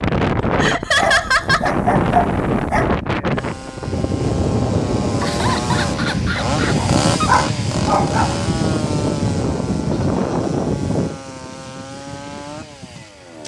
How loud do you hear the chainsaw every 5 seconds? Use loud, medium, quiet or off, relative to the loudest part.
medium, loud, medium.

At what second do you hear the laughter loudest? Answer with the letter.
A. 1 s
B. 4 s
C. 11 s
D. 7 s
A.